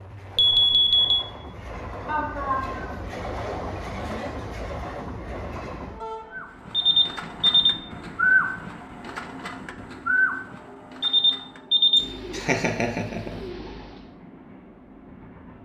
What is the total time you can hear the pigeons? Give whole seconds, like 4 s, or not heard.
8 s.